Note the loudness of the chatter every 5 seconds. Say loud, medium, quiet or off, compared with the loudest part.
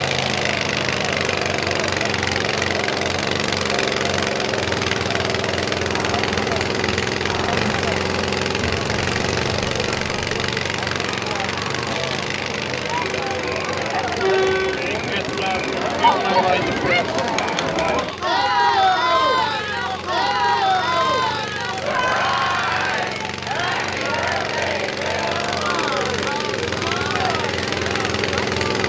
medium, medium, medium, loud, loud, medium.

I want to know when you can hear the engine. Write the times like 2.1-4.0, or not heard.
0.0-28.8.